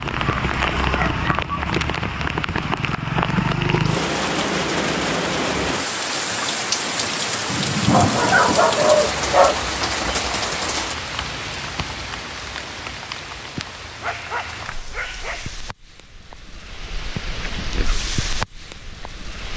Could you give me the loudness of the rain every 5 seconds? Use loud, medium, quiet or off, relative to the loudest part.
loud, loud, medium, medium.